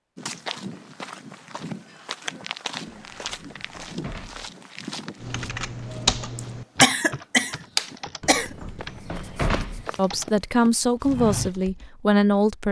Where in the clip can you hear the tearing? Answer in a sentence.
The tearing can't be heard in this clip.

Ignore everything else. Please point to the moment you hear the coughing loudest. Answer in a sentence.
The volume of the coughing peaks at 7 seconds.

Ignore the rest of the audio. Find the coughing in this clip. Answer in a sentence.
You can hear the coughing from 6.3 to 8.6 s.